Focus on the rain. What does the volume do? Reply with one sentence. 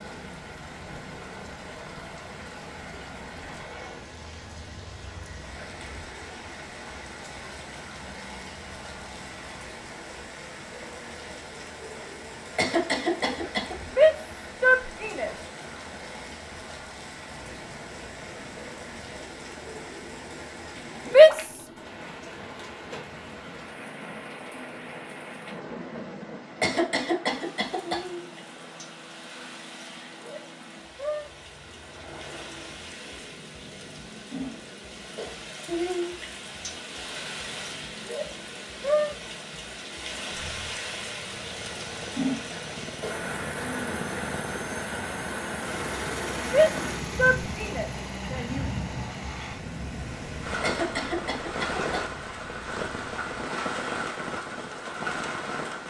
The loudness of the rain goes up.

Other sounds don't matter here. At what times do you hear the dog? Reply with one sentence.
You can't hear the dog here.